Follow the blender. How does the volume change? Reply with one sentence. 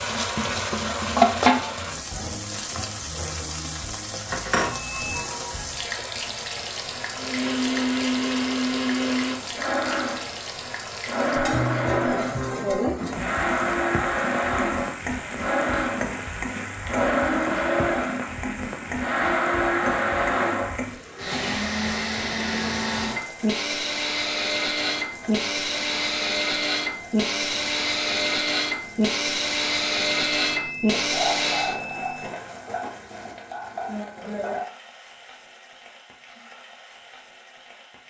The volume of the blender stays about the same.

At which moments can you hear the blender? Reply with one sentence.
The blender can be heard from 7.2 to 31.8 s.